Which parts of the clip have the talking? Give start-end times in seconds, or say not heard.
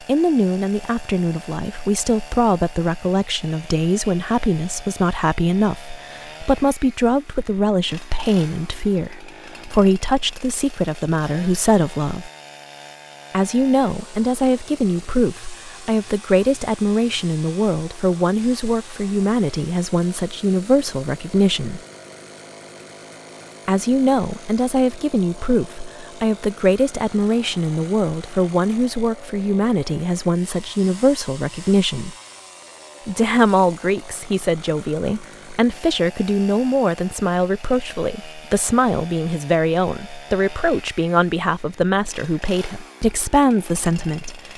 0.1-12.3, 13.3-21.8, 23.6-32.1, 33.0-44.5.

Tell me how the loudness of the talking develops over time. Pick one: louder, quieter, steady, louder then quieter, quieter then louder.
steady.